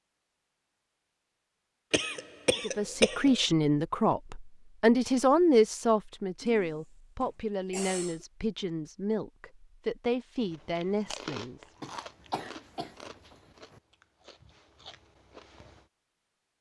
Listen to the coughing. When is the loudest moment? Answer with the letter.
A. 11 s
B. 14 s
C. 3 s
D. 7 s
C.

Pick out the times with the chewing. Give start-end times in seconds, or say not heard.
10.4-15.8.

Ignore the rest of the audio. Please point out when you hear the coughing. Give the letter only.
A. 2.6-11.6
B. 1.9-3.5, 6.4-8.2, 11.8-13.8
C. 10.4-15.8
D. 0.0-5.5
B.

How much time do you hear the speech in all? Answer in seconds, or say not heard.
9 s.